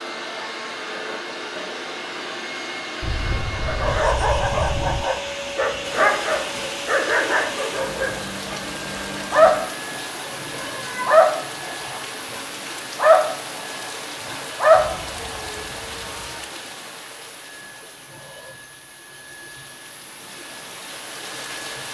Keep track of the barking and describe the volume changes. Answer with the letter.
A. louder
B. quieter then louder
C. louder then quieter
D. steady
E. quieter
A.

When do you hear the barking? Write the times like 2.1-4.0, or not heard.
3.5-15.5.